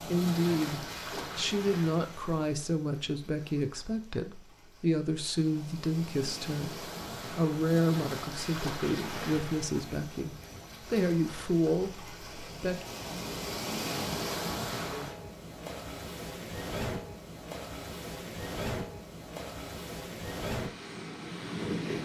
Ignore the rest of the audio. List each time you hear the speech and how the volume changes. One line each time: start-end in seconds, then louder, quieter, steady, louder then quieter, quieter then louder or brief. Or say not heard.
0.0-12.8 steady.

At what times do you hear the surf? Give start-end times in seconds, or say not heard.
0.0-22.0.